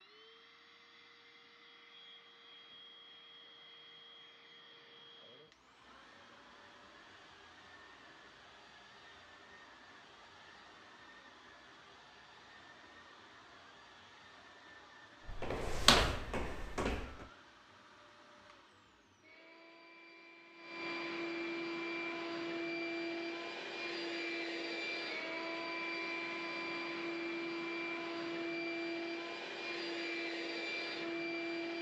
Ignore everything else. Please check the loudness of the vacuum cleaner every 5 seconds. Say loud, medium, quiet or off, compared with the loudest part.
quiet, quiet, quiet, quiet, loud, loud, loud.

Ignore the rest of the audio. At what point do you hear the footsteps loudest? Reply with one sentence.
The loudest moment of the footsteps is at 16 seconds.